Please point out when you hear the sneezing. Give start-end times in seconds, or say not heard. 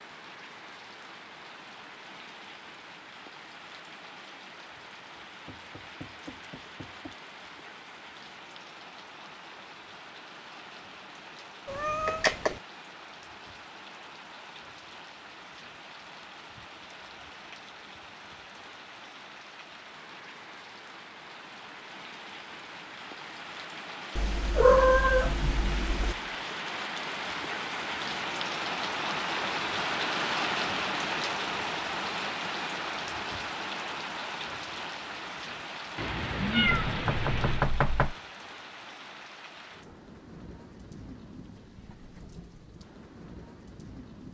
not heard.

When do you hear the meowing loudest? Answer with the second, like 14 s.
25 s.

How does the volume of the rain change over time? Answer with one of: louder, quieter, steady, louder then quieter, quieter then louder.
louder then quieter.